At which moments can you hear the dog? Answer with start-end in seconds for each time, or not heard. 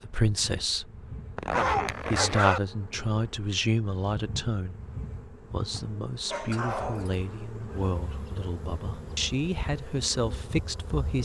1.5-2.6, 6.3-7.2.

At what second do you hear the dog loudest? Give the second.
2 s.